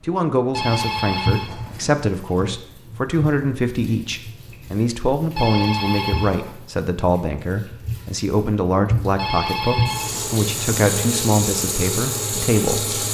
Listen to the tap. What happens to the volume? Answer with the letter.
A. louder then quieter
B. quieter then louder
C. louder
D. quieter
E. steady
B.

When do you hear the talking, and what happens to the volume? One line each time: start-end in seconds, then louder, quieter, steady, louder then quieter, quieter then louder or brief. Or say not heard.
0.1-13.0 steady.